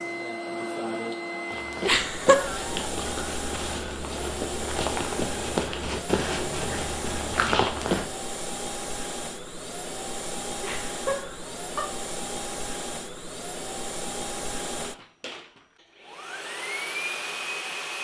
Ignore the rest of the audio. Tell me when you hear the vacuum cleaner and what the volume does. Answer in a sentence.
You can hear the vacuum cleaner from 0.0 to 17.9 s, at a steady volume.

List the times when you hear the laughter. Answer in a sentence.
The laughter can be heard from 1.9 to 2.8 s and from 10.6 to 11.8 s.